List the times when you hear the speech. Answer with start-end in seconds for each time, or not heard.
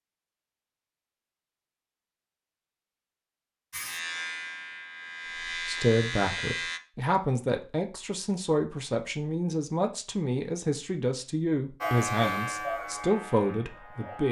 5.7-14.2.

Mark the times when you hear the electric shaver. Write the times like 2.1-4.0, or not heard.
3.7-6.8, 11.8-14.2.